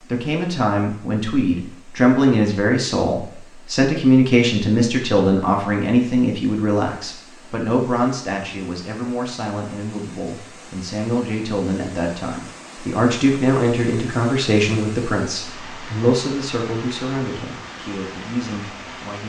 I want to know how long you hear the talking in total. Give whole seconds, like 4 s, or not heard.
19 s.